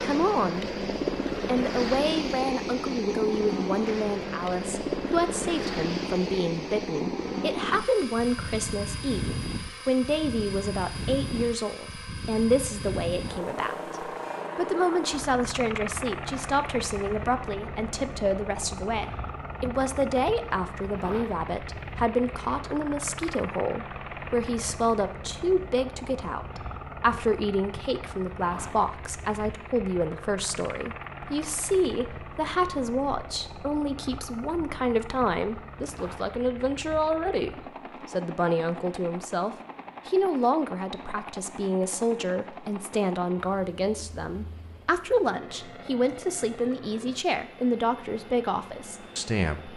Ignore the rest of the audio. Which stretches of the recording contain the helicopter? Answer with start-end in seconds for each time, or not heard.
0.0-49.7.